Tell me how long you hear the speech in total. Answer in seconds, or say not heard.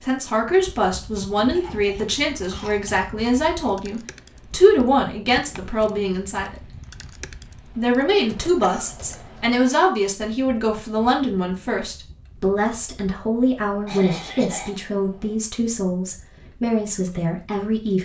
17 s.